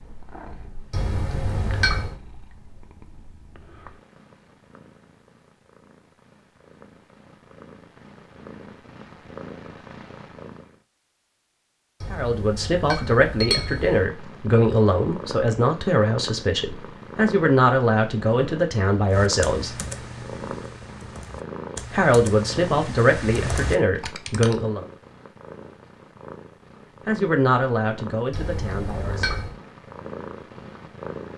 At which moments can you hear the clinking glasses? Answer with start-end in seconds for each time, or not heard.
0.9-2.1, 12.0-14.1, 28.3-29.6.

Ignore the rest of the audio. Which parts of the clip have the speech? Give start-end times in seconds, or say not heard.
12.1-19.8, 21.9-24.9, 27.1-29.3.